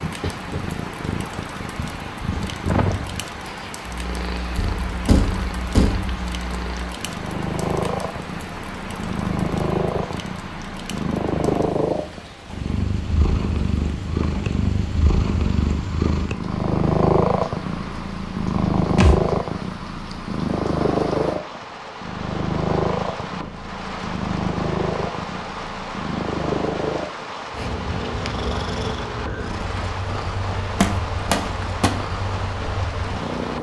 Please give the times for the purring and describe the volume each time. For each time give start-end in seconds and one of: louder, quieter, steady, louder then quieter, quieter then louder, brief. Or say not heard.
0.0-33.5 louder then quieter.